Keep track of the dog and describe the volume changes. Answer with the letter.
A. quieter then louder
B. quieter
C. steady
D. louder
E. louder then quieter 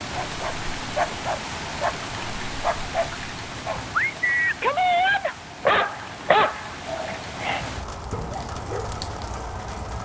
E.